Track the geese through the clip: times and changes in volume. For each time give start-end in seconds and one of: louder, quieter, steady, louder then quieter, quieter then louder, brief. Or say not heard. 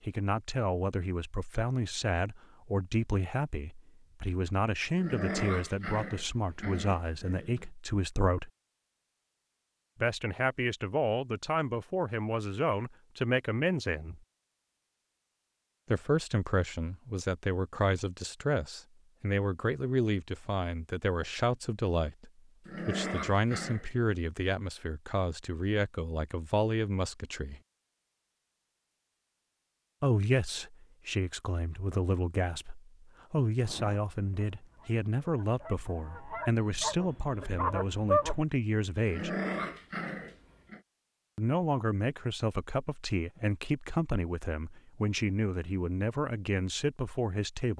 33.6-38.5 louder.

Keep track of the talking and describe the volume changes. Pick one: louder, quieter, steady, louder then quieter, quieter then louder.
steady.